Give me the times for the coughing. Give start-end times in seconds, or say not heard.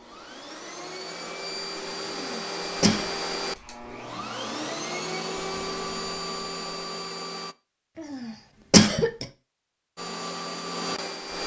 2.1-3.0, 8.0-9.2.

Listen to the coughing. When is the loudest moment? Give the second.
9 s.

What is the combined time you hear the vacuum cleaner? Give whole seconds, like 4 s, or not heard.
9 s.